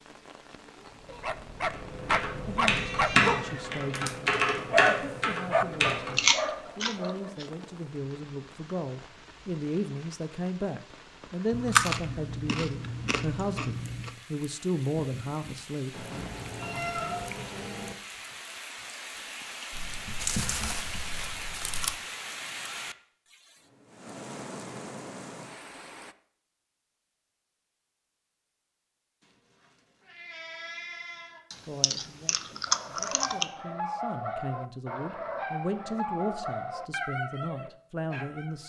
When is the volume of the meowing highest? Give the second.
17 s.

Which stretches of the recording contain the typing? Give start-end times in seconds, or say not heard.
1.7-6.2.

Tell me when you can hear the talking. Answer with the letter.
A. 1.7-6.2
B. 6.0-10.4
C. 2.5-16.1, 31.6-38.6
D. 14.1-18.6
C.